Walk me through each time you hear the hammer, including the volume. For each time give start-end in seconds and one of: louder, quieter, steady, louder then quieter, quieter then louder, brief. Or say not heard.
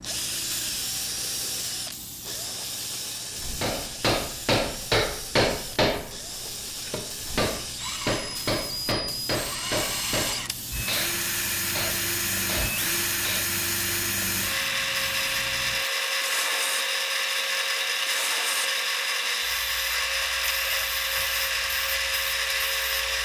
3.6-13.6 quieter.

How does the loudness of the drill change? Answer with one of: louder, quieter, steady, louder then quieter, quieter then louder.
louder.